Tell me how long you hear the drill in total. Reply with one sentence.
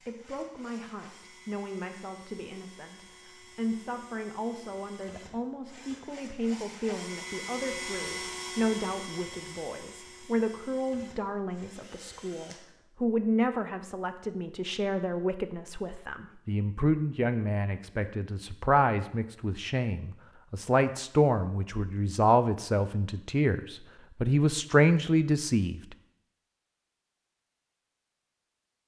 The drill can be heard for 13 seconds in total.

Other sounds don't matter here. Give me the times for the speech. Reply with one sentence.
You can hear the speech from 0.0 to 25.9 s.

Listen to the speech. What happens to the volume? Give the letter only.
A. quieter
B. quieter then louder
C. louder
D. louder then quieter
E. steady
C.